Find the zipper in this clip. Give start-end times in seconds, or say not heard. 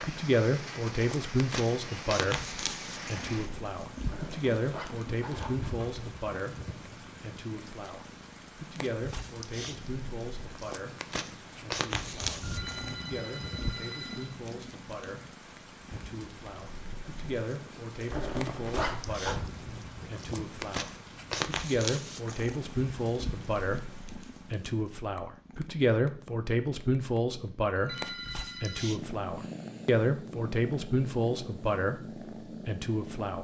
4.0-6.0, 18.1-19.4.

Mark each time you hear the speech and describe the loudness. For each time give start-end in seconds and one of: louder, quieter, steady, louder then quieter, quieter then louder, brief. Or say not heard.
0.0-33.3 quieter then louder.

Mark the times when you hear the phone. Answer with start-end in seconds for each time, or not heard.
12.4-14.3, 27.8-28.9.